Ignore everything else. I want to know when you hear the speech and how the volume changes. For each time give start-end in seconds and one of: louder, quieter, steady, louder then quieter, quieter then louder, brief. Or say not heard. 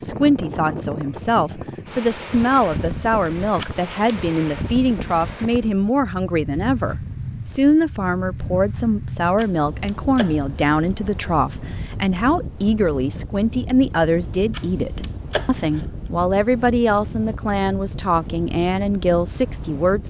0.0-20.0 steady.